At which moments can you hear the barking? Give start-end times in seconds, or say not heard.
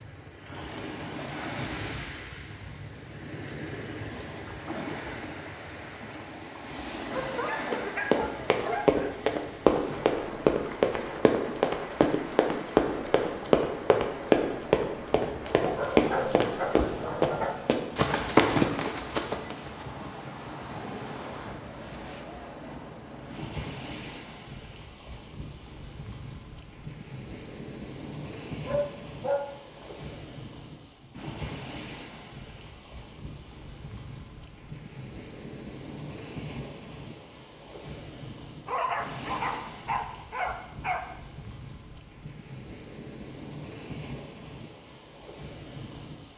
7.1-9.1, 15.6-17.6, 28.6-29.9, 38.6-41.0.